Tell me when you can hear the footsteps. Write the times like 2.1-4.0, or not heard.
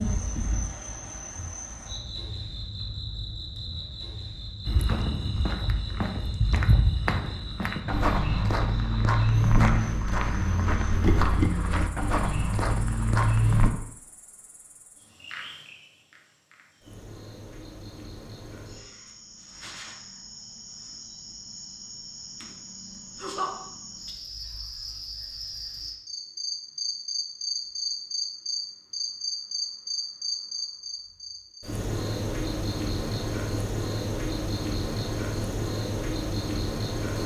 4.7-13.7.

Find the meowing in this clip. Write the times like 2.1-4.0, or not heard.
not heard.